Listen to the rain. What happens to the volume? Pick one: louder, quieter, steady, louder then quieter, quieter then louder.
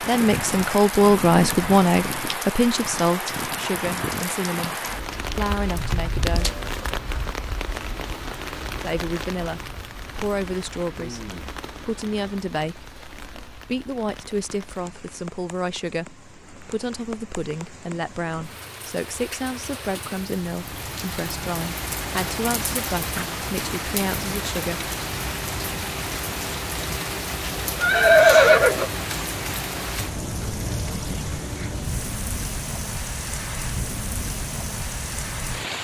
quieter then louder.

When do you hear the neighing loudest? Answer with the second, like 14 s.
28 s.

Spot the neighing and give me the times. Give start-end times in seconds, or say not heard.
6.3-7.0, 27.8-28.9.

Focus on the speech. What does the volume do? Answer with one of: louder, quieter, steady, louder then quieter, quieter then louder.
quieter.